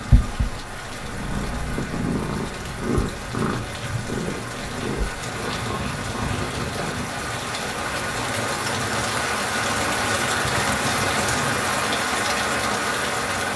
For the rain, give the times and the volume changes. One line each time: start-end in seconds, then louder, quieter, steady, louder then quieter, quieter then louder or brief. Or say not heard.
0.0-13.5 louder.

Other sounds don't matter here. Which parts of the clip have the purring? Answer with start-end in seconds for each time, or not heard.
0.0-8.2.